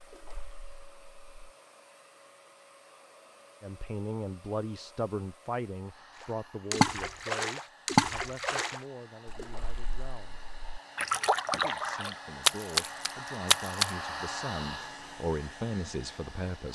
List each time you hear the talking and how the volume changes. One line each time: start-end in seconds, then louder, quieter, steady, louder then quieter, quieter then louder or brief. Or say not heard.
3.6-10.4 quieter
11.6-16.7 louder.